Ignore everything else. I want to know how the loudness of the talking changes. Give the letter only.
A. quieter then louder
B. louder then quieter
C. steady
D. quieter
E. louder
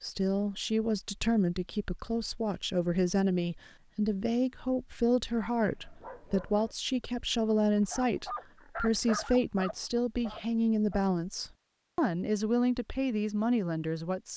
C.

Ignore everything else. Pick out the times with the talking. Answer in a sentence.
You can hear the talking from 0.0 to 14.3 s.